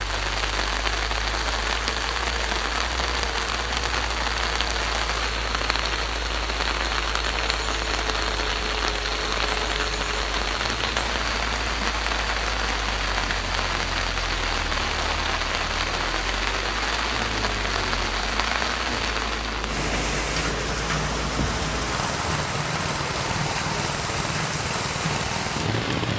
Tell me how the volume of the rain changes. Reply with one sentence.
The volume of the rain stays about the same.